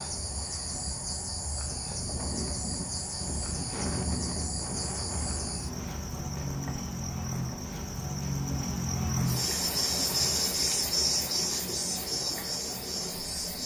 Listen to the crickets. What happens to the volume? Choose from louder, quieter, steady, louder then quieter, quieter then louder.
louder.